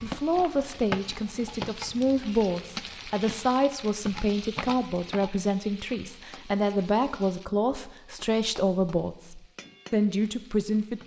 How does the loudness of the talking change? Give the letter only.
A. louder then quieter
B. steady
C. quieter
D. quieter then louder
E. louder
B.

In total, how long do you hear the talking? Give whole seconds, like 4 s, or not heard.
11 s.